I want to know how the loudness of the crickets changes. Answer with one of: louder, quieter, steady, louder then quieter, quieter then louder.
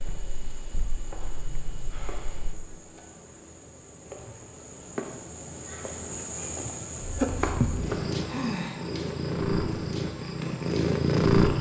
louder then quieter.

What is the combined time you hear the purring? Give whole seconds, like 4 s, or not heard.
7 s.